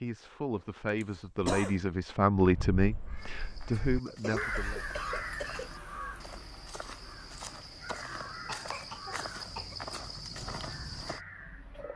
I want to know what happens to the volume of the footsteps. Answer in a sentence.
The loudness of the footsteps goes up.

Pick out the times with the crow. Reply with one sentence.
The crow can be heard from 2.4 to 11.9 s.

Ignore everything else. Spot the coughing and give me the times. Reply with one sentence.
You can hear the coughing from 1.0 to 1.8 s, from 4.0 to 5.7 s and from 8.0 to 9.8 s.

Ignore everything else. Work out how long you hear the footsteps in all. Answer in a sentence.
The footsteps can be heard for 8 seconds in total.